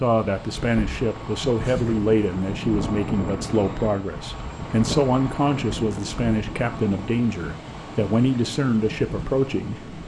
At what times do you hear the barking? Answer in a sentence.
The barking can't be heard in this clip.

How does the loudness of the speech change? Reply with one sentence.
The volume of the speech stays about the same.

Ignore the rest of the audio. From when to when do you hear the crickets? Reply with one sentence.
You can't hear the crickets here.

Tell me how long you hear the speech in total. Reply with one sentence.
The speech can be heard for 10 seconds in total.